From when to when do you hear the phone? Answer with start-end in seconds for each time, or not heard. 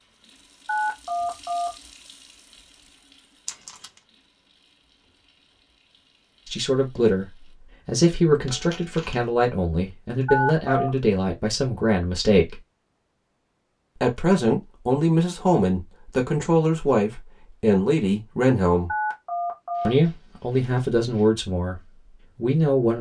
0.7-1.7, 10.2-10.9, 18.9-19.9.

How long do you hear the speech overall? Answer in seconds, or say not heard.
14 s.